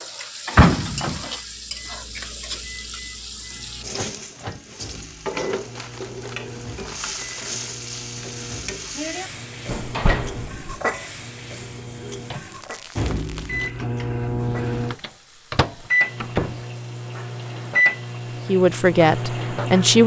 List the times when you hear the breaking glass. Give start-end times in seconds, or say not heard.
not heard.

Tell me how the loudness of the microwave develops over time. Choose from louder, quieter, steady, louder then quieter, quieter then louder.
louder.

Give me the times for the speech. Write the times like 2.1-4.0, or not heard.
18.4-20.0.